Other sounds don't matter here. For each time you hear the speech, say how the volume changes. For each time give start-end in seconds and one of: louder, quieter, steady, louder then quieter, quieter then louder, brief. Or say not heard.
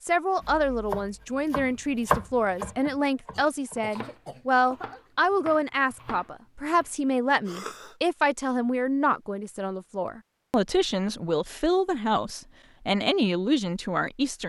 0.0-14.4 steady.